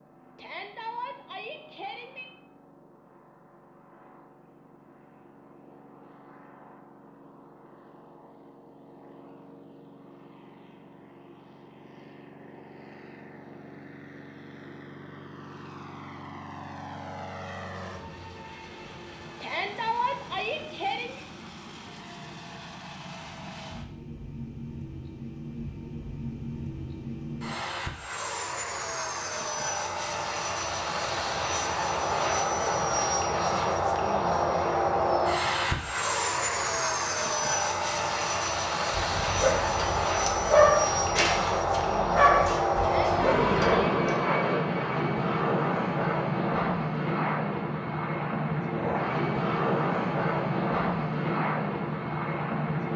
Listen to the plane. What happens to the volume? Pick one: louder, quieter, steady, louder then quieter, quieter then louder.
louder.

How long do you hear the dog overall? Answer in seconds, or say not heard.
5 s.